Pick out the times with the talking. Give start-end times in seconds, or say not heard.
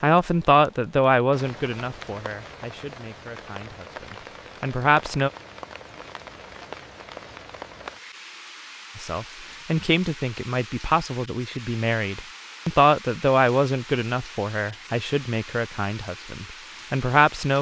0.0-5.3, 8.9-17.5.